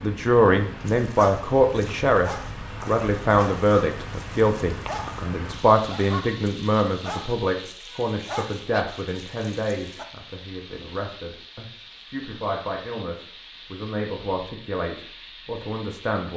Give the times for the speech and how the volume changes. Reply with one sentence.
You can hear the speech from 0.0 to 16.3 s, getting quieter.